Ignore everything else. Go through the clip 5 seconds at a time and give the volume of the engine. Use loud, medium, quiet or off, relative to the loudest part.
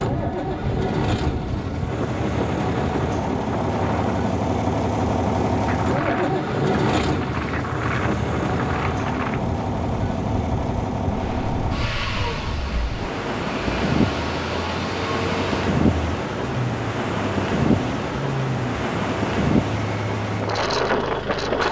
loud, loud, medium, medium, medium.